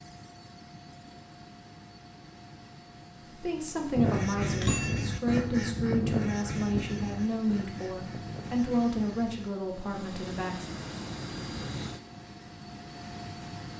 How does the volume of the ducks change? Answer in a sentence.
The volume of the ducks goes down.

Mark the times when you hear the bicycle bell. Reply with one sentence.
You can hear the bicycle bell from 4.5 to 5.0 s.